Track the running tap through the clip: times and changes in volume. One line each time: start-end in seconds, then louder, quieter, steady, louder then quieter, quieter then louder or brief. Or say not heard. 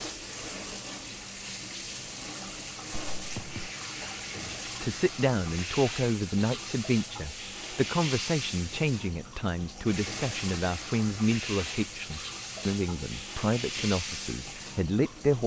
0.0-15.4 steady.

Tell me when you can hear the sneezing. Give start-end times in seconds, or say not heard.
2.9-3.7.